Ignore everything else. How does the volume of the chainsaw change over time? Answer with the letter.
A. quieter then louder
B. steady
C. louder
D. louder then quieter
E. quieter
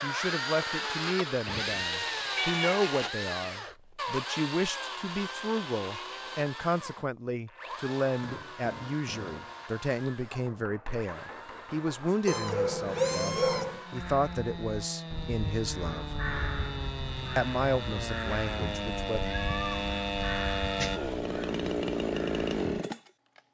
A.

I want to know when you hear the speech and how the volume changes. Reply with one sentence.
You can hear the speech from 0.0 to 16.1 s, at a steady volume; and briefly from 17.4 to 19.2 s.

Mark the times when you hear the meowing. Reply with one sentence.
The meowing can be heard from 2.4 to 2.9 s, from 12.2 to 13.8 s, from 19.2 to 19.9 s and from 20.6 to 21.1 s.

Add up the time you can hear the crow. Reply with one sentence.
The crow can be heard for 9 seconds in total.